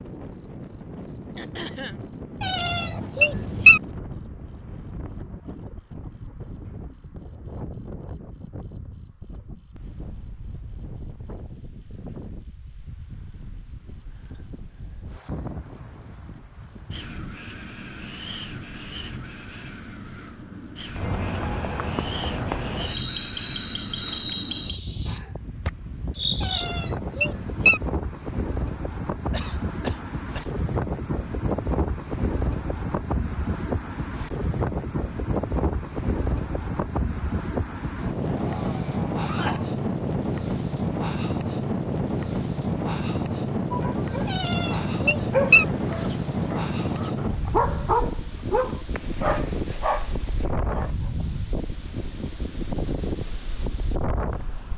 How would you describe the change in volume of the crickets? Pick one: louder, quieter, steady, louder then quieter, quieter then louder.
quieter.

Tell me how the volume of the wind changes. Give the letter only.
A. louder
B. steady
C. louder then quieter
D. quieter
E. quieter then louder
A.